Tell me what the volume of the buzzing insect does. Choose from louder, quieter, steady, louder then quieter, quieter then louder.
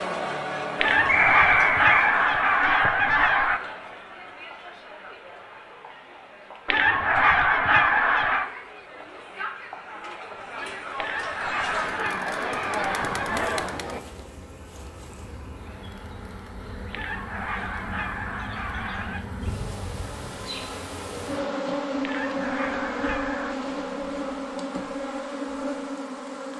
louder.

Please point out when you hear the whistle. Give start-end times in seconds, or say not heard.
1.1-2.1.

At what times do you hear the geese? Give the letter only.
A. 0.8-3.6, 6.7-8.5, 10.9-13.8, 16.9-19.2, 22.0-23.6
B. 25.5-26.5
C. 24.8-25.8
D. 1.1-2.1
A.